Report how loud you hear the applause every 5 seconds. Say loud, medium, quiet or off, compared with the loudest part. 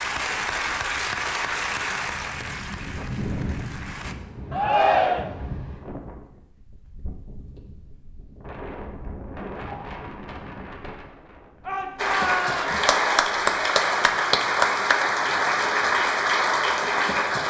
medium, off, loud, loud.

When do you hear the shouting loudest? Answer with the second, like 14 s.
5 s.